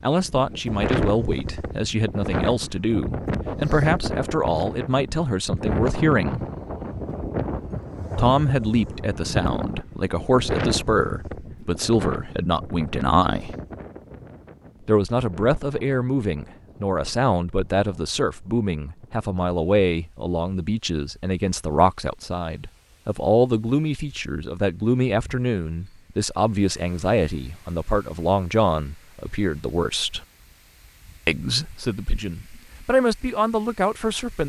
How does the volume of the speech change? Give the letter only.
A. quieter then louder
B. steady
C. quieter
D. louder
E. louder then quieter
B.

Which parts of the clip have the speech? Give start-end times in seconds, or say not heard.
0.0-6.5, 8.2-13.6, 14.8-30.2, 31.2-34.4.